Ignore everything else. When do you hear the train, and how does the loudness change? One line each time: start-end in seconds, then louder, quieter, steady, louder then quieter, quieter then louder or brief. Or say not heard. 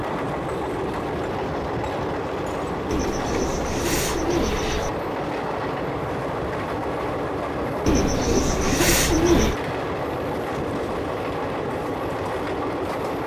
0.0-13.2 steady.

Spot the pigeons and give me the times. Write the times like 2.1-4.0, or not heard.
2.9-4.9, 7.8-9.6.